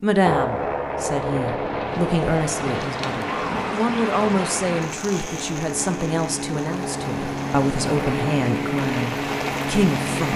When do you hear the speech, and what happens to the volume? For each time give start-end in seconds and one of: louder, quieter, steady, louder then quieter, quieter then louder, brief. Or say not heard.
0.0-10.3 steady.